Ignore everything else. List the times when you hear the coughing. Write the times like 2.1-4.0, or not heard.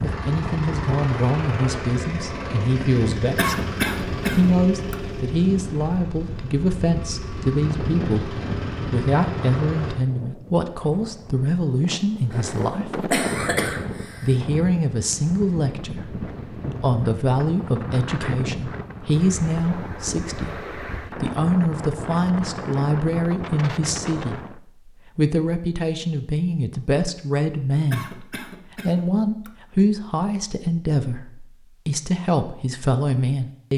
3.4-5.0, 12.3-14.3, 27.9-29.5.